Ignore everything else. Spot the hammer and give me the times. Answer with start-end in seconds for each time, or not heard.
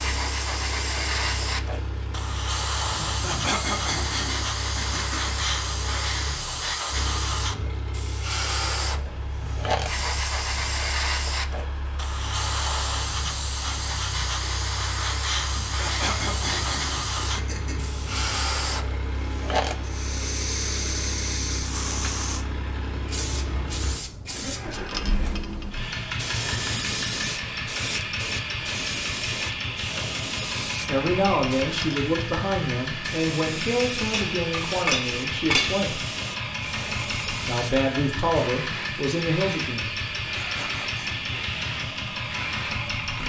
34.1-35.9.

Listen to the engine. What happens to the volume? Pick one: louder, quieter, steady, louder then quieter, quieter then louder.
louder.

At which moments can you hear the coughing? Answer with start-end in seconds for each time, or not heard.
3.2-5.3, 15.8-18.0, 40.4-41.1.